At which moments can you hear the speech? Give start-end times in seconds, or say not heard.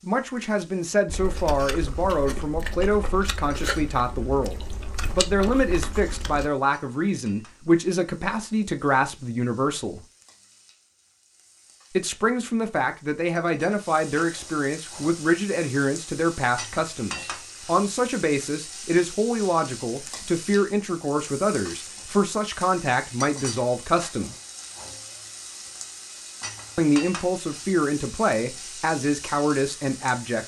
0.0-10.0, 11.9-24.4, 26.8-30.4.